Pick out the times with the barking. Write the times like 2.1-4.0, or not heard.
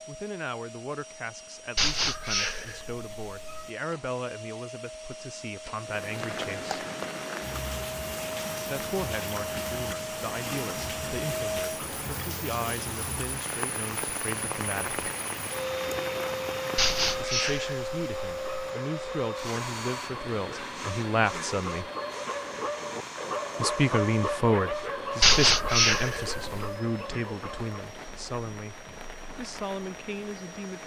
18.2-27.8.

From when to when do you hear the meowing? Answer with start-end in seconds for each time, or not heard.
1.8-3.7, 16.8-18.7, 25.2-26.7.